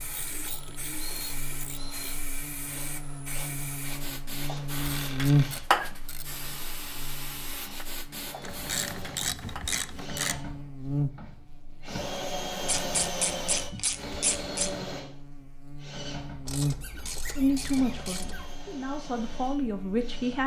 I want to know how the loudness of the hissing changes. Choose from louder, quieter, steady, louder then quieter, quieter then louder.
louder then quieter.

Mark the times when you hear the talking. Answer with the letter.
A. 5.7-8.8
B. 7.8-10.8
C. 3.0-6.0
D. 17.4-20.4
D.